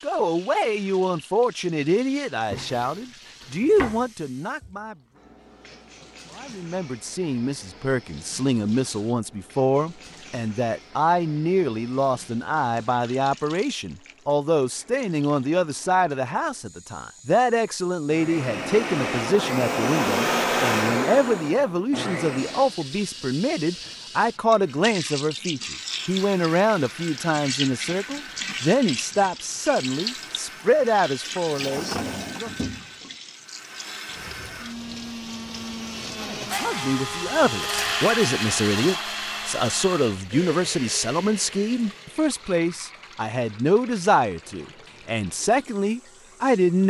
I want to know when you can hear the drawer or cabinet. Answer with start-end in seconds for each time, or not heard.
2.4-4.0, 31.2-33.1.